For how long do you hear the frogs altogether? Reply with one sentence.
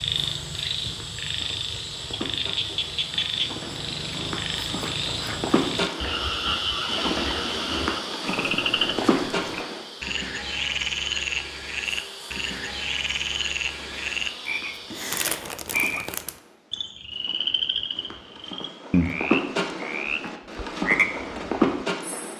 You can hear the frogs for 22 seconds altogether.